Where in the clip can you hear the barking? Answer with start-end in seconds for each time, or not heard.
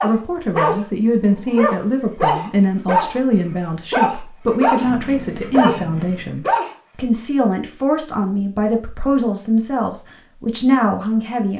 0.0-6.7.